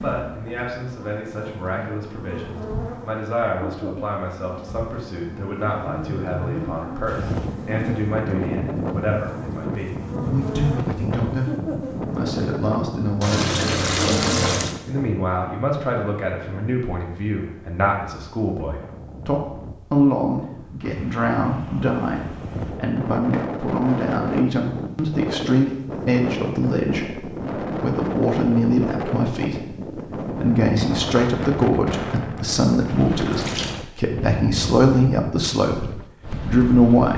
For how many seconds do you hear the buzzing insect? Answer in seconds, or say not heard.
12 s.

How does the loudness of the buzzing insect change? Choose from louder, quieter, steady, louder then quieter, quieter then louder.
louder.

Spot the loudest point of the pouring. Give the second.
14 s.